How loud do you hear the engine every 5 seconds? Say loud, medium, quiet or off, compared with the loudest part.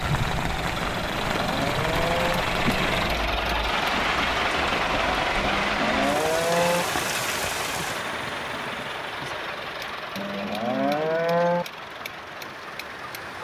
loud, loud, medium.